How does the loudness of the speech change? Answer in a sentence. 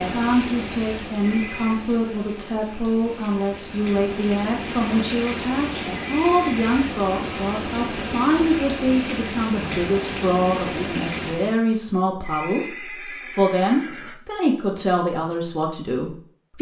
The volume of the speech stays about the same.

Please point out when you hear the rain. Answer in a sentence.
You can hear the rain from 0.0 to 11.6 s.